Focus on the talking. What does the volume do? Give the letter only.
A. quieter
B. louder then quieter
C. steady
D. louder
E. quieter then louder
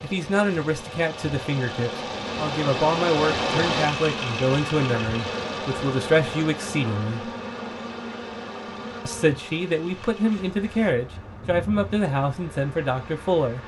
C.